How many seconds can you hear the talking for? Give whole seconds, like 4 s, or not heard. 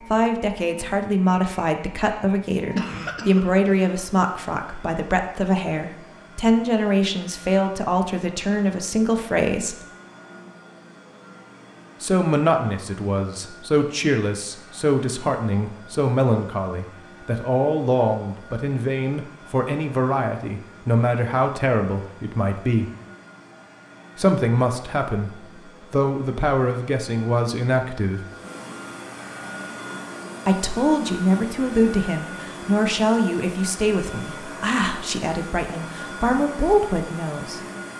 32 s.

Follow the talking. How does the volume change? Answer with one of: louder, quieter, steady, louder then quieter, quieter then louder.
steady.